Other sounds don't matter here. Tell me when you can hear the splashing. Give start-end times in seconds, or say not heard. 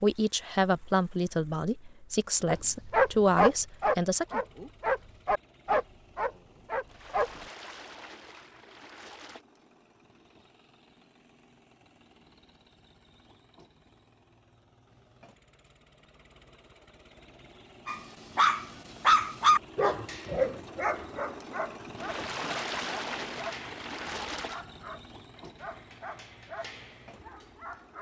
6.8-9.4, 21.9-24.6.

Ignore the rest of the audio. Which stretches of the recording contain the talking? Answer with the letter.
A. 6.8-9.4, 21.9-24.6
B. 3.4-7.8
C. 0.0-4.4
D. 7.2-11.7
C.